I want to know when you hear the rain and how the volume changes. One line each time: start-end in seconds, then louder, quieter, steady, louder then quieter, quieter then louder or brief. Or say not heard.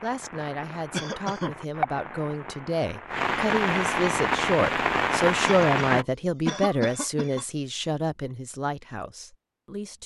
0.0-6.0 louder.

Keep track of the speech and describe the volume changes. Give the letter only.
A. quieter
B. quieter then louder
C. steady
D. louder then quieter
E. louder
D.